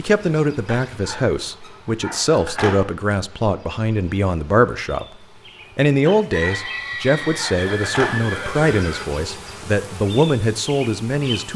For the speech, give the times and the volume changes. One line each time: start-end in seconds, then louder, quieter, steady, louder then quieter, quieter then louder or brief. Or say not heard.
0.0-11.5 steady.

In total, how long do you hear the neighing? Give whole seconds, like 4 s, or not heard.
3 s.